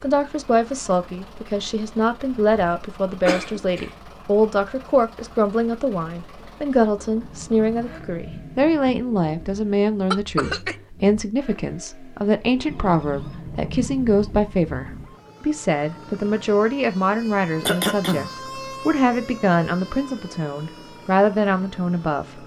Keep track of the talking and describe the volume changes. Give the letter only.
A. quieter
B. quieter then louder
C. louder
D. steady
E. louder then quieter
D.